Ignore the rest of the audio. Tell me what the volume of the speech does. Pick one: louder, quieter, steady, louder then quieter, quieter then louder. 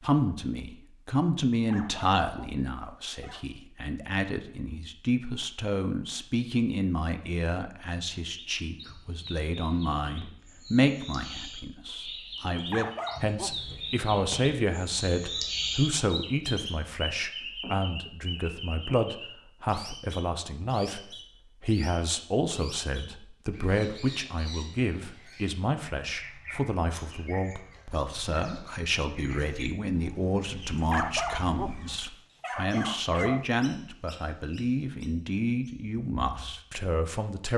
steady.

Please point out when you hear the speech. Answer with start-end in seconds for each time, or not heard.
0.0-37.5.